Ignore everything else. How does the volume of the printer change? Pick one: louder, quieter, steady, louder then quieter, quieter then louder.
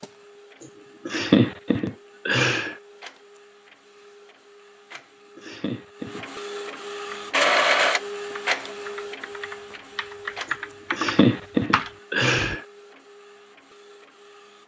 louder then quieter.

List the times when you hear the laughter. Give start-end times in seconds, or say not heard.
0.6-2.8, 5.3-6.2, 10.9-12.7.